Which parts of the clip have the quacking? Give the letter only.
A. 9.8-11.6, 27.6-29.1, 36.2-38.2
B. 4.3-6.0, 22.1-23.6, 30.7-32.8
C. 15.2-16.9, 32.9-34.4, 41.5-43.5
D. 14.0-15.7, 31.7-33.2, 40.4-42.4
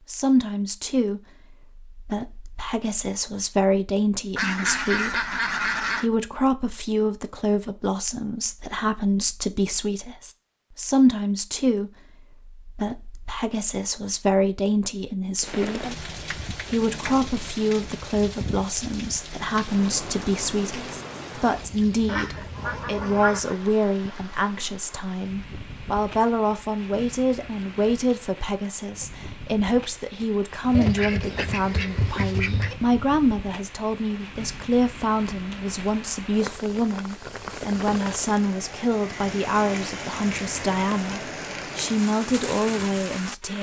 B.